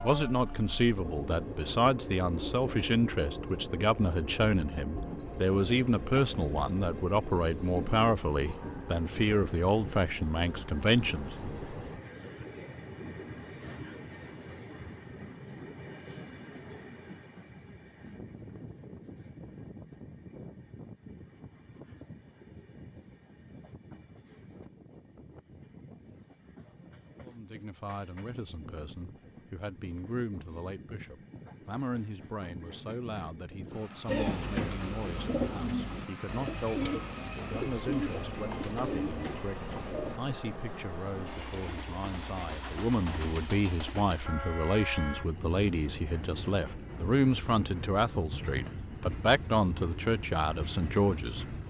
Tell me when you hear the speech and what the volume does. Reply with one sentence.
The speech can be heard from 0.0 to 11.3 s, at a steady volume; and from 27.2 to 51.5 s, getting louder.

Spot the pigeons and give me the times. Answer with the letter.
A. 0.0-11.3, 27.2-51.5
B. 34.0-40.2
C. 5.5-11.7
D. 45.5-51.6
B.